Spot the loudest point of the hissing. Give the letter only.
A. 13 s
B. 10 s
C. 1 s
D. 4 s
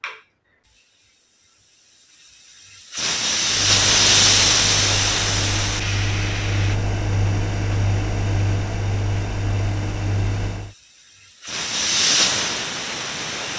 D.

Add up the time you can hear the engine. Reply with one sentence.
You can hear the engine for 7 seconds altogether.